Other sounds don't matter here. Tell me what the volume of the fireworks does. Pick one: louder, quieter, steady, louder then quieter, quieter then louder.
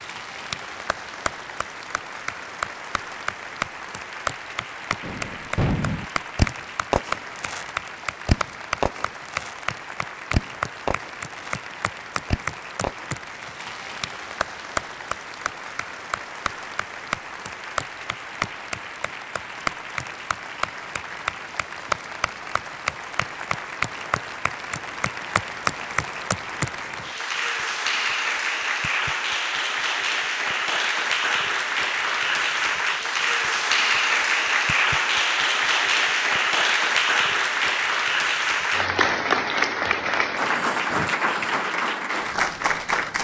quieter.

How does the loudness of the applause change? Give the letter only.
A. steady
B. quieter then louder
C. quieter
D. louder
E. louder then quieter
D.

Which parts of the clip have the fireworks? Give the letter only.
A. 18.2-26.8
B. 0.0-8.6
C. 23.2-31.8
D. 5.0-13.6
D.